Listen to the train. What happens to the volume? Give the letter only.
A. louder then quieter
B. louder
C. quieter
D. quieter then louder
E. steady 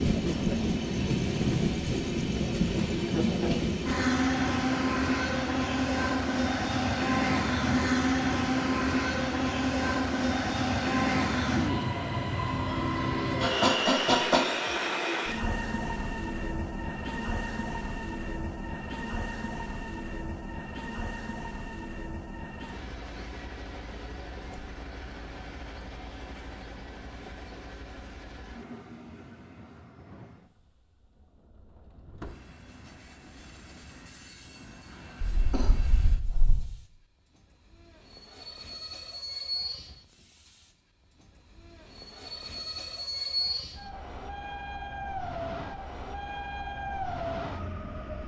D.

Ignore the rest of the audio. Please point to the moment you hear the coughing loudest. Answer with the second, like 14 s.
14 s.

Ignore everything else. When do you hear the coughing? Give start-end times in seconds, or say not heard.
13.4-14.4, 35.3-36.7.